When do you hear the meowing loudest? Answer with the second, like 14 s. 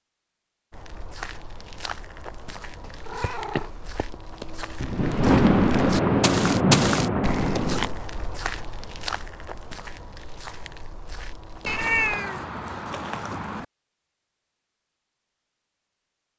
12 s.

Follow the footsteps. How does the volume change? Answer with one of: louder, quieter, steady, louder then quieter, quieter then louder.
louder then quieter.